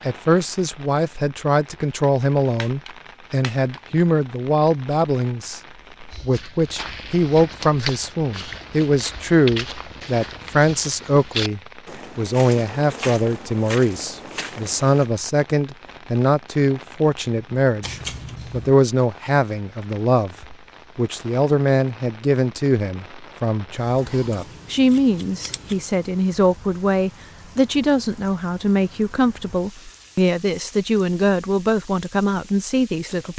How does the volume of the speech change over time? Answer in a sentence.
The volume of the speech stays about the same.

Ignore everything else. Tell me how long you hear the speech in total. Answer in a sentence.
The speech can be heard for 33 seconds in total.